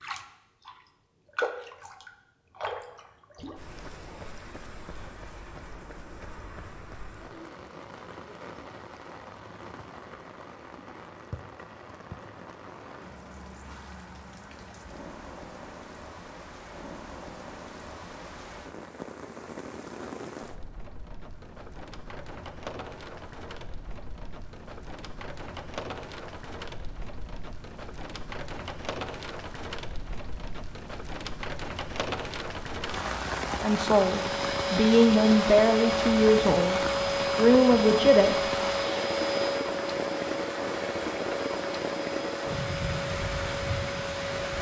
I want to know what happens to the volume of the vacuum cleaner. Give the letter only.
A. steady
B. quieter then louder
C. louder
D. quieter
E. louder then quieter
D.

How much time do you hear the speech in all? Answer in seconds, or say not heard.
5 s.